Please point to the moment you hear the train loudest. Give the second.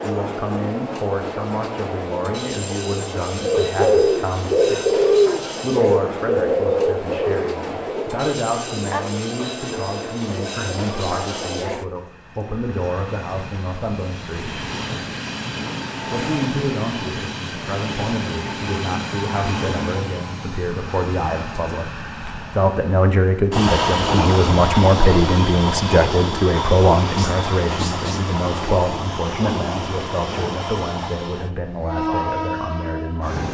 24 s.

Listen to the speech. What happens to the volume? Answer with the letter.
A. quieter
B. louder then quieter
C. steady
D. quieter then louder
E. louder
B.